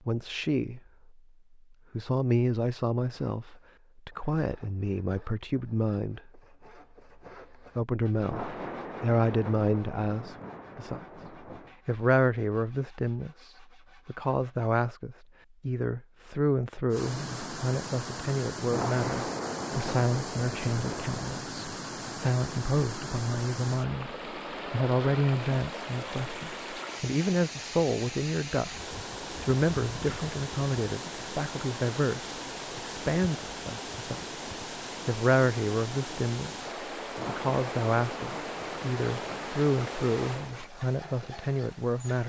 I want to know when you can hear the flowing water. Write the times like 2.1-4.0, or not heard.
16.9-42.2.